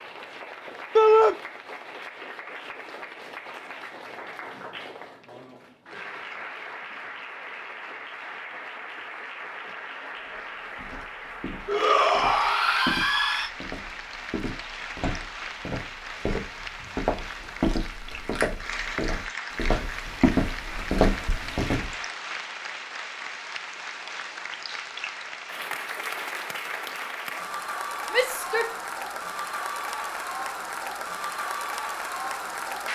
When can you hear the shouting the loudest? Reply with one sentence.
The volume of the shouting peaks at 1 second.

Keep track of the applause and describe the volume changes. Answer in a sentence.
The loudness of the applause goes up.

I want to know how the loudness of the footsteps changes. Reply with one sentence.
The volume of the footsteps goes up.